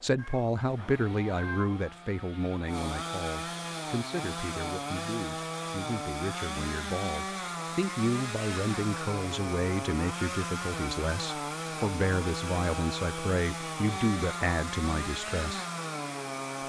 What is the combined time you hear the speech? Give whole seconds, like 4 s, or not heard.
16 s.